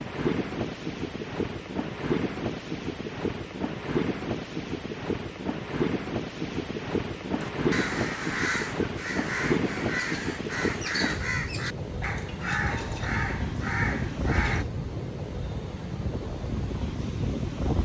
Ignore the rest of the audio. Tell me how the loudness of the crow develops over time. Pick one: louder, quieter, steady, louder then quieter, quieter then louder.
steady.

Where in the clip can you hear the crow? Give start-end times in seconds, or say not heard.
7.4-14.7.